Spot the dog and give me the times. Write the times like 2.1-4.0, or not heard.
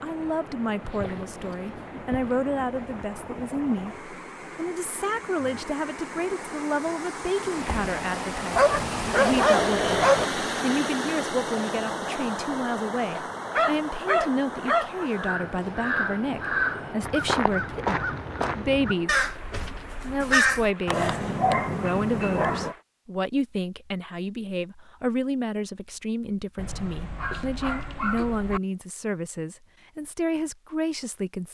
0.8-2.4, 8.5-10.2, 13.2-15.1, 20.9-22.8, 26.6-28.6.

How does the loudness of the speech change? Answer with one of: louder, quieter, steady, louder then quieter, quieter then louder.
steady.